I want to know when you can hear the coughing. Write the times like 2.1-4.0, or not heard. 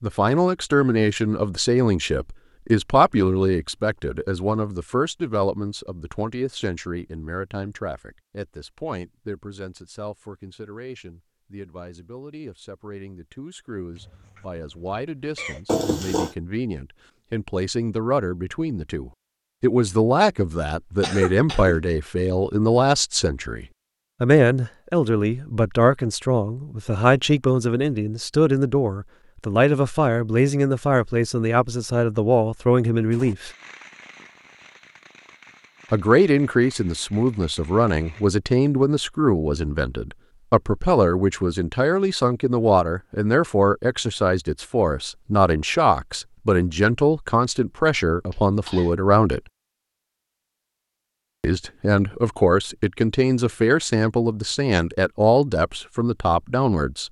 13.9-15.8, 21.0-21.8, 48.3-48.9.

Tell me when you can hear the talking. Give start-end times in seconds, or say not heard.
0.0-33.5, 35.9-49.4, 51.4-57.0.